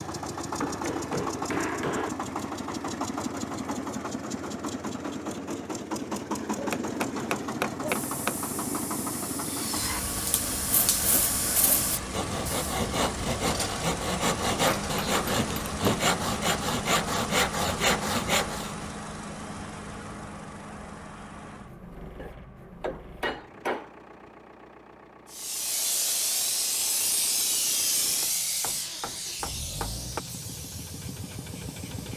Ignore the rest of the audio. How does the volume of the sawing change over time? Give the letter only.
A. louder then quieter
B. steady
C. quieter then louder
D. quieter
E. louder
E.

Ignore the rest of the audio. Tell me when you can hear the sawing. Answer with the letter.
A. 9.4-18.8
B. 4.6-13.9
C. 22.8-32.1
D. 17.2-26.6
A.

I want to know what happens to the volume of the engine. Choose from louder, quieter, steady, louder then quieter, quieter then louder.
quieter.